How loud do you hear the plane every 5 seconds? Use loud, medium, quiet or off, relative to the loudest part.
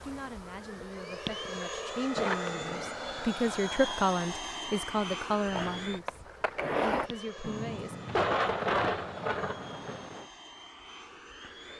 loud, medium, medium.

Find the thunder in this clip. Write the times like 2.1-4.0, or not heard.
7.4-10.2.